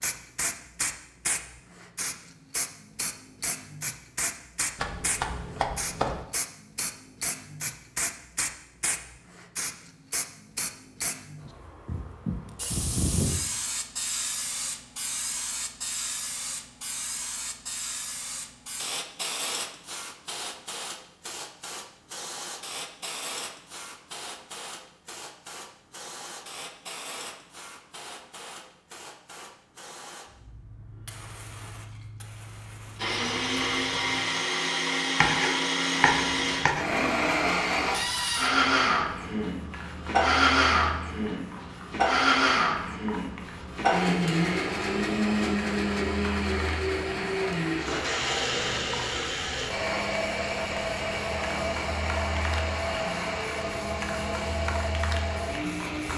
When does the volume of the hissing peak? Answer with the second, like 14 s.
13 s.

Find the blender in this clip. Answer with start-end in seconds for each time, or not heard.
33.0-56.1.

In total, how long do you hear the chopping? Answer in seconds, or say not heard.
3 s.